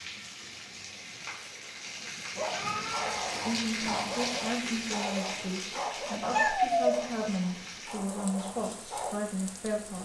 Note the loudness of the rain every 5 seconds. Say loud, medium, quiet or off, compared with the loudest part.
loud, medium.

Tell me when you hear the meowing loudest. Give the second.
7 s.